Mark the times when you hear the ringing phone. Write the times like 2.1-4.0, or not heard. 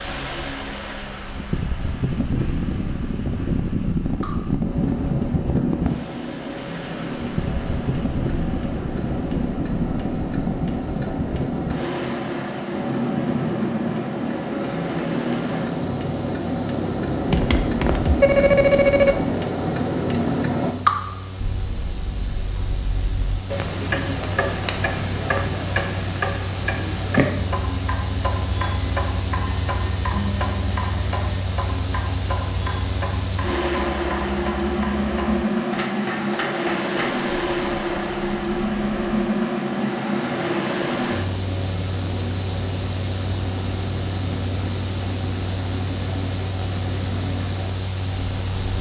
17.2-19.2.